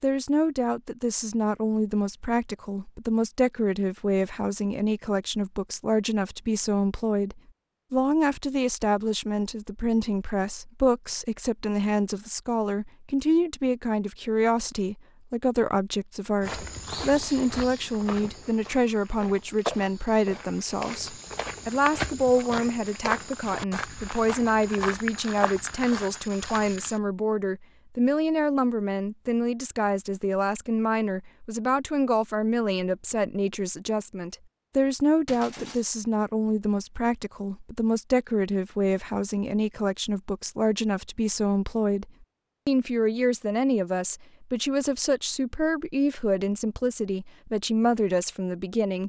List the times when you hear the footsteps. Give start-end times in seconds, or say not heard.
16.4-27.0.